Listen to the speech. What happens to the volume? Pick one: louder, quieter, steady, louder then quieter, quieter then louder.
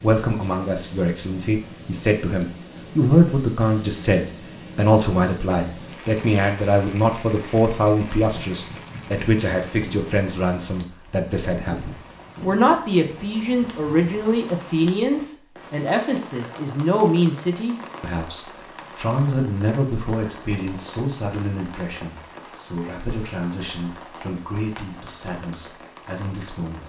quieter.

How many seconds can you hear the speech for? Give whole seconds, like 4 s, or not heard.
27 s.